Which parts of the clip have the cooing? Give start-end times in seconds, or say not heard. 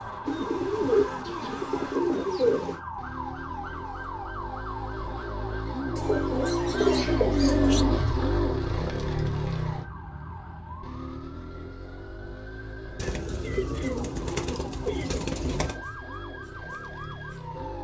0.2-2.8, 6.0-7.8, 12.9-15.8.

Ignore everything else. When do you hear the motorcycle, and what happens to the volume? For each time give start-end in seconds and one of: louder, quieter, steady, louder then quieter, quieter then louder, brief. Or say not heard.
0.0-17.7 louder then quieter.